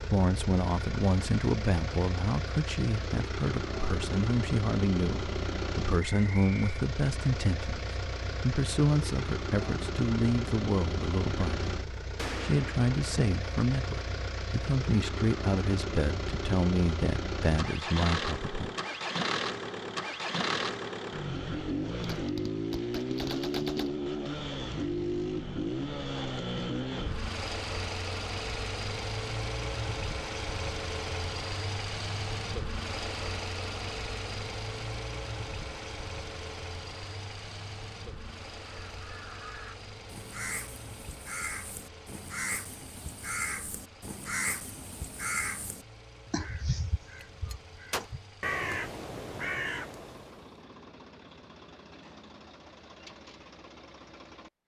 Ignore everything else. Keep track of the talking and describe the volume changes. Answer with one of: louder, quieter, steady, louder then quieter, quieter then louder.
steady.